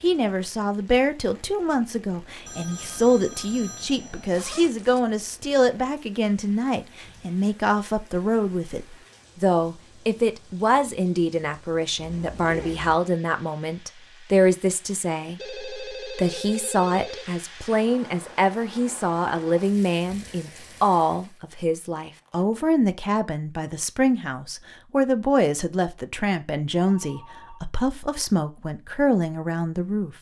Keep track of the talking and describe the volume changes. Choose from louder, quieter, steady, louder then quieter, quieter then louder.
steady.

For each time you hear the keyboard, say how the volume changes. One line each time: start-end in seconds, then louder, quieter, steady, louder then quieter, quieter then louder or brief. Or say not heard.
not heard.